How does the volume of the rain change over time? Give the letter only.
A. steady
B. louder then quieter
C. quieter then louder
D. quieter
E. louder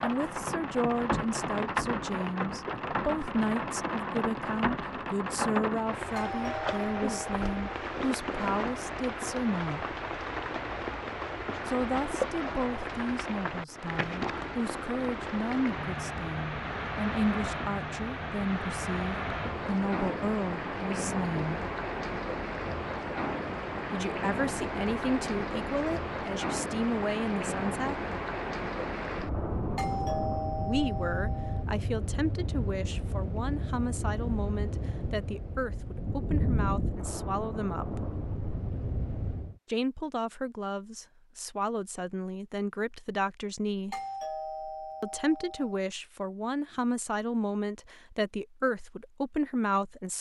A.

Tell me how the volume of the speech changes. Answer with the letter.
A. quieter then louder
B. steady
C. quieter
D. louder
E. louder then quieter
B.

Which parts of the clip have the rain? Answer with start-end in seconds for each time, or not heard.
0.0-39.5.